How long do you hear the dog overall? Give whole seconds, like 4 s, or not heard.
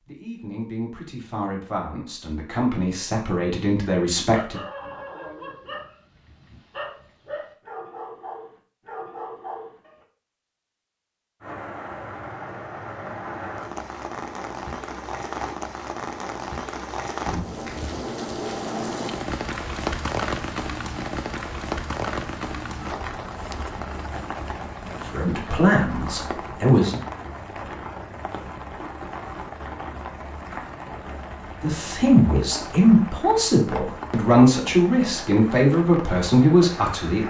6 s.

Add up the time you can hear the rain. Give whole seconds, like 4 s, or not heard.
26 s.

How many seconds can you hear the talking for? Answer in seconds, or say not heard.
12 s.